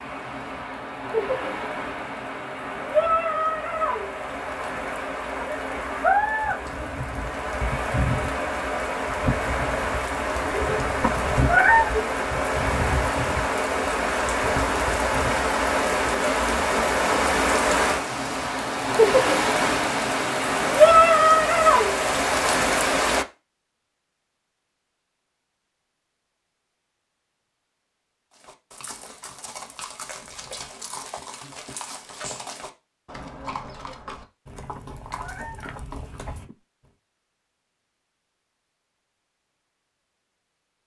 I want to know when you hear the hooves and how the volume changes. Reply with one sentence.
You can hear the hooves from 28.3 to 36.9 s, at a steady volume.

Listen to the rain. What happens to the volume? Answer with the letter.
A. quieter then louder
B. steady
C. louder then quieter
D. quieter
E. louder
E.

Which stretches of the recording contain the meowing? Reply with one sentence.
You can hear the meowing from 11.0 to 11.9 s and from 34.8 to 35.8 s.